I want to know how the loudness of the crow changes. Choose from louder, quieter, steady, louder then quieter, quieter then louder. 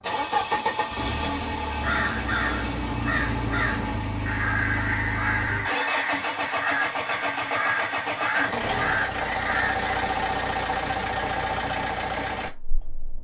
steady.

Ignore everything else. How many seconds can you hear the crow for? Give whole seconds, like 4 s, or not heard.
8 s.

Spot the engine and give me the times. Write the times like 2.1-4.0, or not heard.
0.0-13.2.